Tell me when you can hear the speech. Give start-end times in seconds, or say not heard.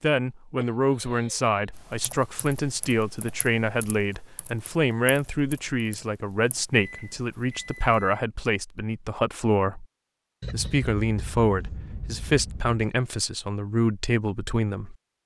0.0-9.8, 10.5-14.9.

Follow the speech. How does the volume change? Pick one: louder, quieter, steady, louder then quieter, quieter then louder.
steady.